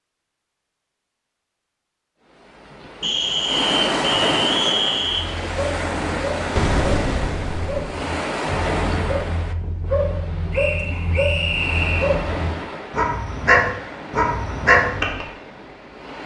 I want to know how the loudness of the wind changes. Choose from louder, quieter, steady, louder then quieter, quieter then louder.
quieter.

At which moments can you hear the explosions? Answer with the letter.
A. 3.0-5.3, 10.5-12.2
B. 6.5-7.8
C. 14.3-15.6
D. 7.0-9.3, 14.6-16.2
B.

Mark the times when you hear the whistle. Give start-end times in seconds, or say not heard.
3.0-5.3, 10.5-12.2.